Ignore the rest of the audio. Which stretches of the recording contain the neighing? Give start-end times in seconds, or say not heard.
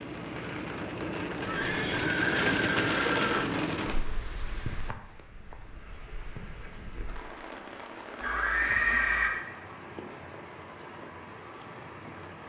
1.4-3.5, 8.2-9.3.